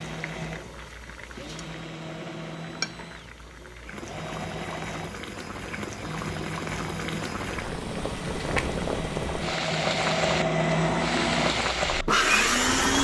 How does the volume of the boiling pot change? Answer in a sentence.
The volume of the boiling pot goes up.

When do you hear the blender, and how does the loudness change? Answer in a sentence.
You can hear the blender from 0.0 to 12.9 s, getting louder.